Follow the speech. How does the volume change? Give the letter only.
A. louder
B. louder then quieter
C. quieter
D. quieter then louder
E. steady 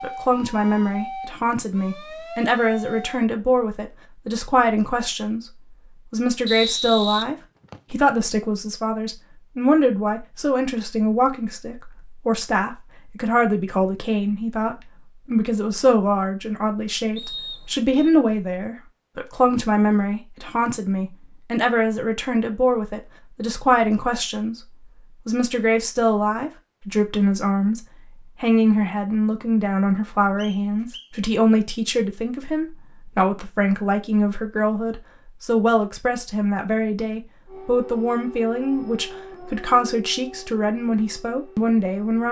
E.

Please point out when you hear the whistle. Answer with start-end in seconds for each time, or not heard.
6.5-8.0, 17.1-18.1, 30.4-31.1.